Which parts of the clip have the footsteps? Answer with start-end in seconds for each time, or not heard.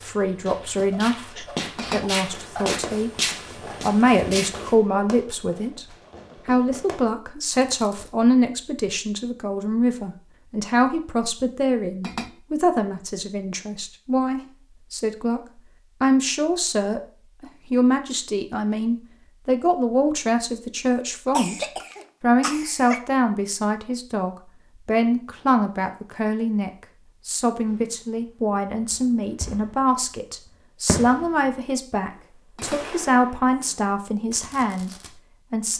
0.0-4.8.